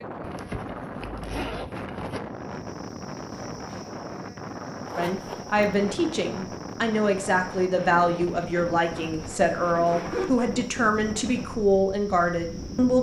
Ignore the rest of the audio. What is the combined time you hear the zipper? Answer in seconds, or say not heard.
4 s.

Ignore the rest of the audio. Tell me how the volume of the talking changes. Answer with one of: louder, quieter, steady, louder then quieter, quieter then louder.
steady.